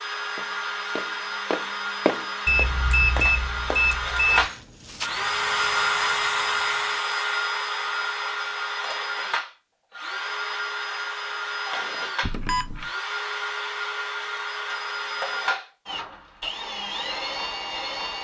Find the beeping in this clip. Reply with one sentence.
You can hear the beeping from 2.5 to 4.5 s and from 12.2 to 12.8 s.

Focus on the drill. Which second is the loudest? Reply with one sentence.
The volume of the drill peaks at 6 seconds.